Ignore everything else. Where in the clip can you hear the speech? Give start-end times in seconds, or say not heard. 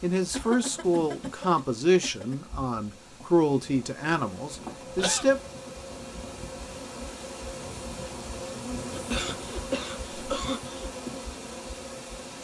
0.0-5.4.